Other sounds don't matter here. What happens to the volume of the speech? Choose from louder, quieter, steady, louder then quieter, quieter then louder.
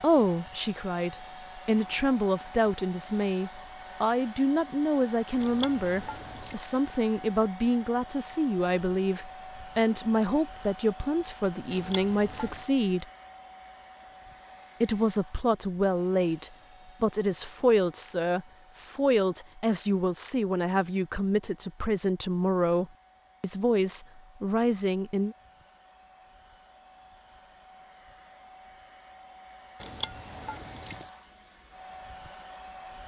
steady.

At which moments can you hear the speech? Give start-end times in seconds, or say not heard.
0.0-13.1, 14.8-25.4.